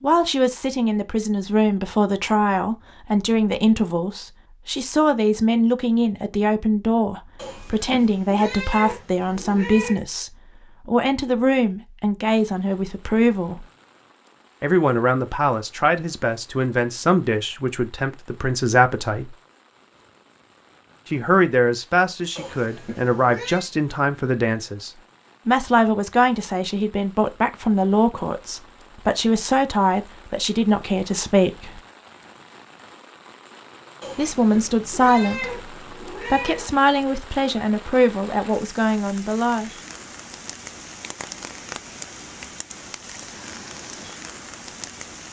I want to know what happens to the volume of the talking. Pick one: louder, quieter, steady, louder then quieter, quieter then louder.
steady.